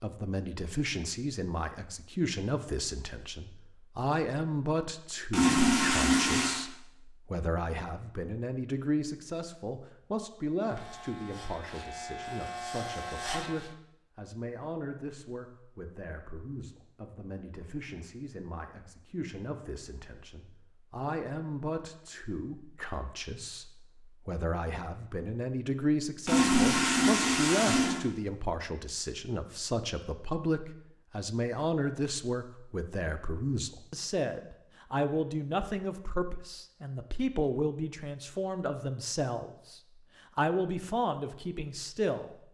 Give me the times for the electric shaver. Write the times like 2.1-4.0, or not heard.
10.6-13.8.